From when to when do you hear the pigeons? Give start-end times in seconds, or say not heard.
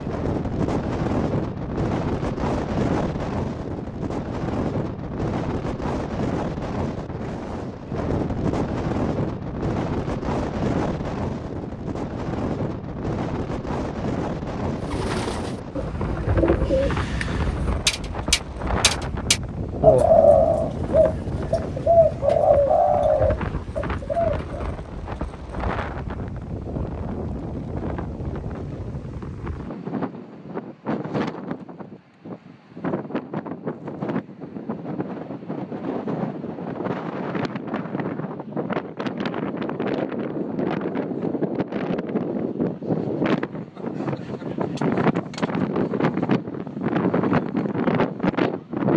14.8-24.6.